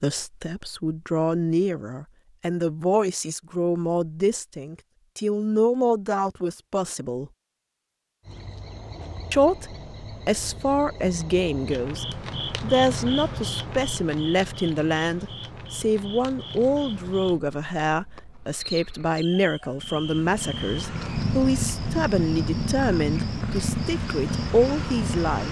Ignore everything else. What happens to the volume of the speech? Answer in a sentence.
The volume of the speech stays about the same.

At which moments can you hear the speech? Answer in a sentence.
You can hear the speech from 0.0 to 7.3 s and from 9.3 to 25.4 s.